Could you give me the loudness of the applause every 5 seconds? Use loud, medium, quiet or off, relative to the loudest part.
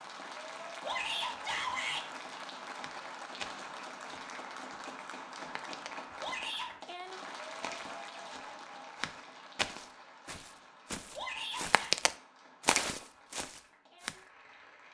loud, loud, quiet.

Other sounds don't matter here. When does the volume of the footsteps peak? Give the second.
12 s.